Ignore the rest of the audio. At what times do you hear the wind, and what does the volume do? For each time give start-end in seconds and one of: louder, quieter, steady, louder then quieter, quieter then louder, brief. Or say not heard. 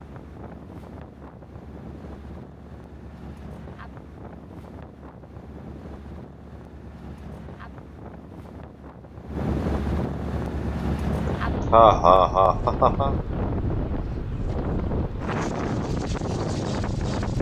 0.0-17.3 louder.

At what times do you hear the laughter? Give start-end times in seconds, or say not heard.
11.2-13.2.